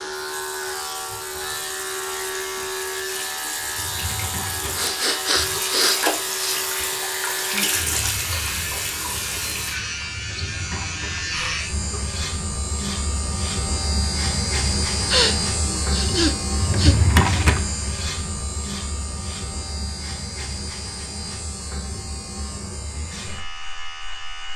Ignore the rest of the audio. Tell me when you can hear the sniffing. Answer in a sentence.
The sniffing can be heard from 4.8 to 6.6 s and from 15.1 to 16.9 s.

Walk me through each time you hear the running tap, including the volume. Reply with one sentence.
The running tap can be heard from 0.0 to 9.8 s, getting louder.